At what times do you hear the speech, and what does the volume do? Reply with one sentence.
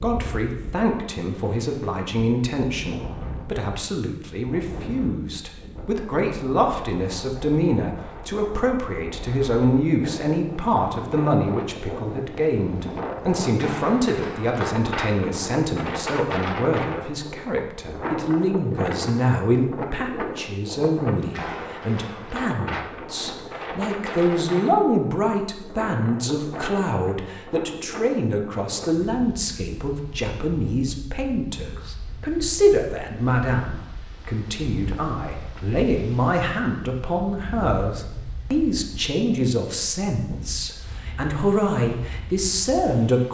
You can hear the speech from 0.0 to 43.2 s, at a steady volume.